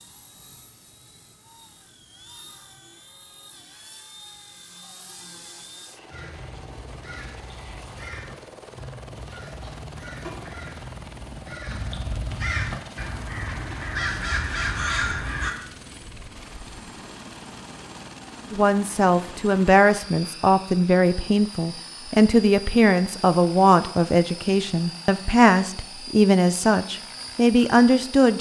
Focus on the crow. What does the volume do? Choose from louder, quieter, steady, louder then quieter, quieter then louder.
louder.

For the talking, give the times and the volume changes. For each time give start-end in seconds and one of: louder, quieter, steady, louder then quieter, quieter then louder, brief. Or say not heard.
18.5-28.3 steady.